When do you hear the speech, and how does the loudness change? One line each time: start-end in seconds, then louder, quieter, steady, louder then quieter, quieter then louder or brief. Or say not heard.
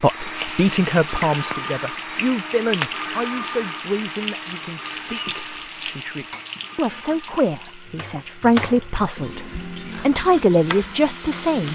0.0-11.6 quieter then louder.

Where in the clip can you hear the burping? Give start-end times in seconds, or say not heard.
not heard.